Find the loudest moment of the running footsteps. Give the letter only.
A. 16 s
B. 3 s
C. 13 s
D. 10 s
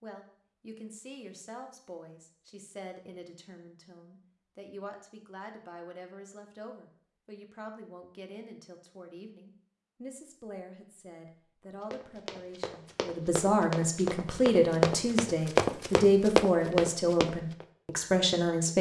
A.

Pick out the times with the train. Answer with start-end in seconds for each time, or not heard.
not heard.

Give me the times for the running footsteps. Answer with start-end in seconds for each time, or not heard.
11.9-17.6.